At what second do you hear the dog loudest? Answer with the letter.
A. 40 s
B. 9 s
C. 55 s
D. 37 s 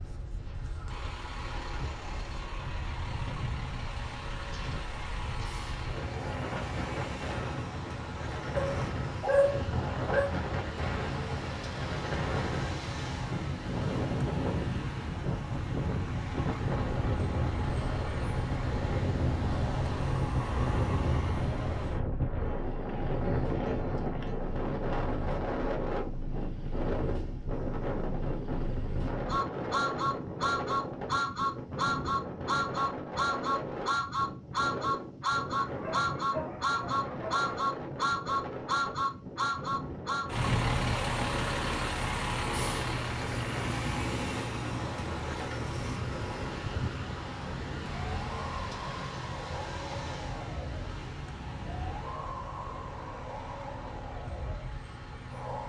B.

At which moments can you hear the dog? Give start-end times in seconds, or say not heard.
8.6-10.3, 35.6-37.5.